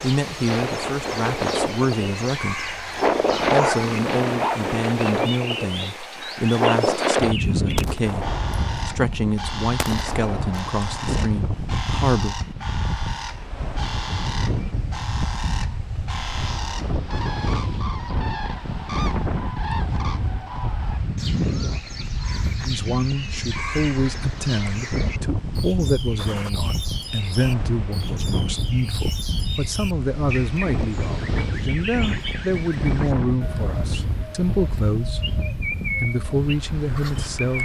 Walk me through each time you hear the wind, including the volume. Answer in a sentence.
You can hear the wind from 0.0 to 37.6 s, getting quieter.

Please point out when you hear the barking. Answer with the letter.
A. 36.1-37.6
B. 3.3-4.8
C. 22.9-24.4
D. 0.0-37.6
B.